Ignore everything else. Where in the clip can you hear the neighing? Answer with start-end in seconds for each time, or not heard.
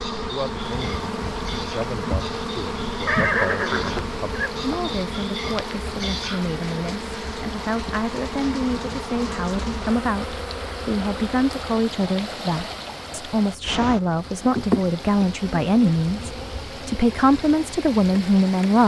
3.0-4.5.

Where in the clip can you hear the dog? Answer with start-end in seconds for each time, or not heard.
0.0-6.5.